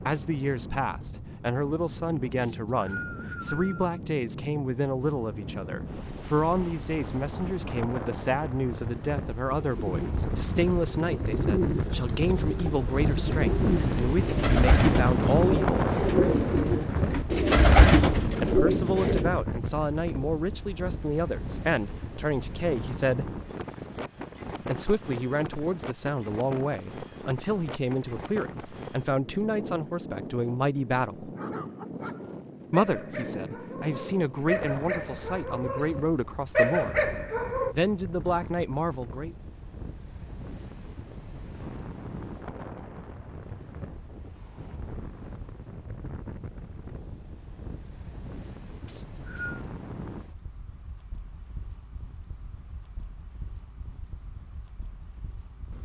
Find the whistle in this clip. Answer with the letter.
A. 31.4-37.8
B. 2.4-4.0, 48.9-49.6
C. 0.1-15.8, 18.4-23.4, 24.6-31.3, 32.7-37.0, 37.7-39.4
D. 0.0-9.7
B.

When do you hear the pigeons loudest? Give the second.
18 s.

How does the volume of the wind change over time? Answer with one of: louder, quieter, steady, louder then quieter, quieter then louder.
louder then quieter.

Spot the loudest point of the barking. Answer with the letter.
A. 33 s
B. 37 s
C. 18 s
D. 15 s
B.